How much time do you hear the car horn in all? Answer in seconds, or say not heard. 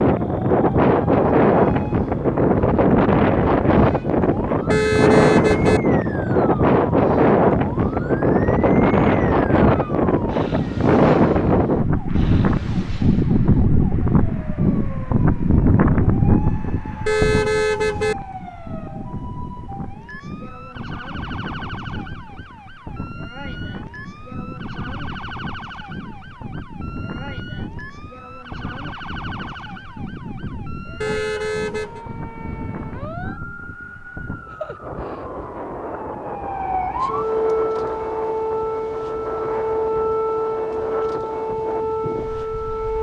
3 s.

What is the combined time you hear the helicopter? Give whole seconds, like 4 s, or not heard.
not heard.